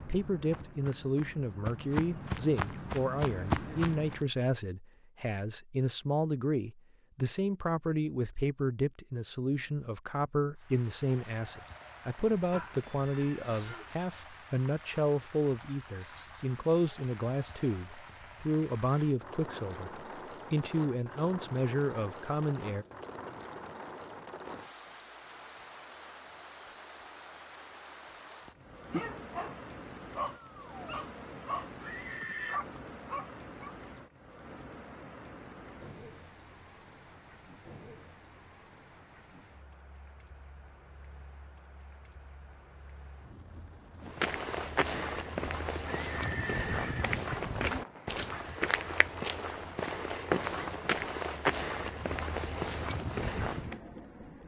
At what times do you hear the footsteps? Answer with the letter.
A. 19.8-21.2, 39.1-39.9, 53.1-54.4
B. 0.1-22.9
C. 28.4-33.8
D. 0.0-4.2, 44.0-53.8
D.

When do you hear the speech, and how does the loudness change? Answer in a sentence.
You can hear the speech from 0.1 to 22.9 s, at a steady volume.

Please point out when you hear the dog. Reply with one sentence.
The dog can be heard from 28.4 to 33.8 s.